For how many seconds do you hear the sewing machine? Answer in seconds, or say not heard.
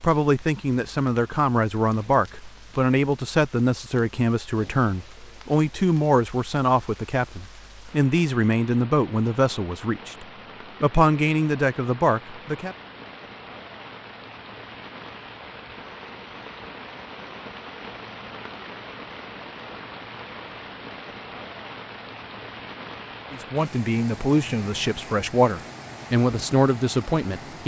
not heard.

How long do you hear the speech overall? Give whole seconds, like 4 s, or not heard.
17 s.